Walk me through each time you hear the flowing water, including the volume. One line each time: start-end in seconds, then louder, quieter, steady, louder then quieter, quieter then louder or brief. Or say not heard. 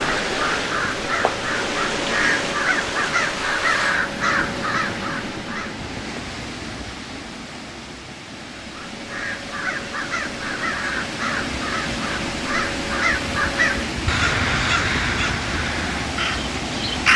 0.0-17.1 quieter then louder.